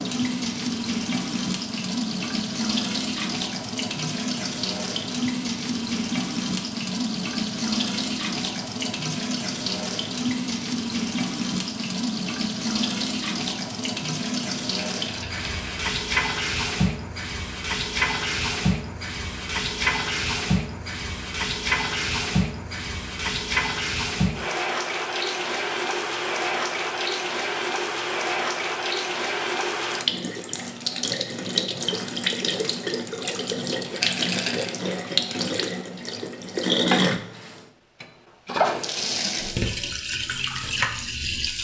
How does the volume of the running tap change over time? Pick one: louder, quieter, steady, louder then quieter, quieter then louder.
steady.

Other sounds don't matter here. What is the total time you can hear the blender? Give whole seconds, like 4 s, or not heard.
not heard.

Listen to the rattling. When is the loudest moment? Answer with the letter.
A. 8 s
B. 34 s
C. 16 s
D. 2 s
B.